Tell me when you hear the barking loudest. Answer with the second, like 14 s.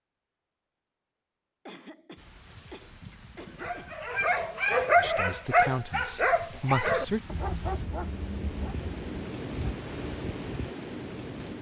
5 s.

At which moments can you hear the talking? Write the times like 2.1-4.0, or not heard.
5.0-7.2.